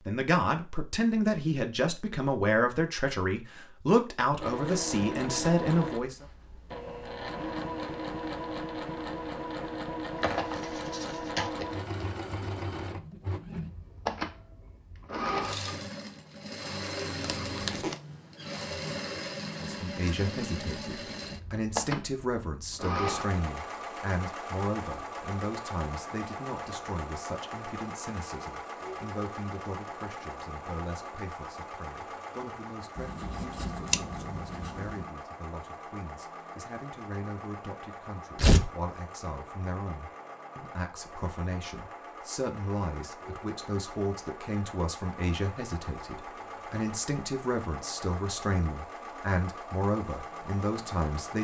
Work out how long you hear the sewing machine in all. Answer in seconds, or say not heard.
47 s.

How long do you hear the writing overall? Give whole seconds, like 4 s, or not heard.
2 s.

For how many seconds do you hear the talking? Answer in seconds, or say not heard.
38 s.